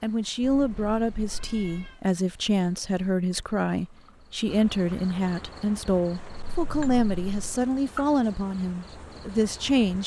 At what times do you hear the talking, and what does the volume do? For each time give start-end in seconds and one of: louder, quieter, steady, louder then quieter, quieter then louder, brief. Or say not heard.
0.0-10.0 steady.